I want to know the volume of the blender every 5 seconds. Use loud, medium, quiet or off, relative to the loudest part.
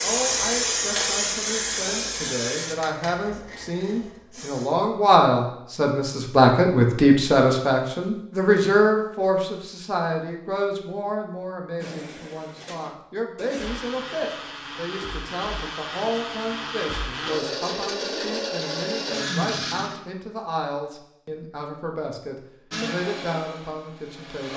off, off, medium, loud, medium.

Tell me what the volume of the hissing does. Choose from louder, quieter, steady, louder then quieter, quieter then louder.
quieter.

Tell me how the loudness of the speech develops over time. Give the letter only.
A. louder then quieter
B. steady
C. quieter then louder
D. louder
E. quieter
A.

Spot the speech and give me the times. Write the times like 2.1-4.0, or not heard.
0.0-24.5.